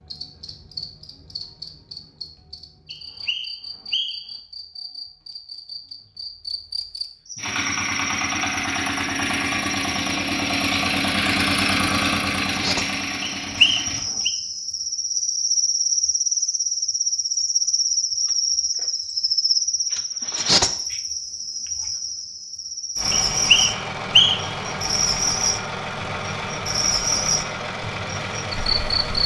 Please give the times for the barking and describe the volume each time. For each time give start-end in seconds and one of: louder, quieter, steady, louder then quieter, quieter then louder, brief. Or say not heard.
not heard.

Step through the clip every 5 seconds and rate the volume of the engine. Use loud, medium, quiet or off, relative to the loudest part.
off, loud, loud, off, medium, medium.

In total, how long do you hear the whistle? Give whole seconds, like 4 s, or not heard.
4 s.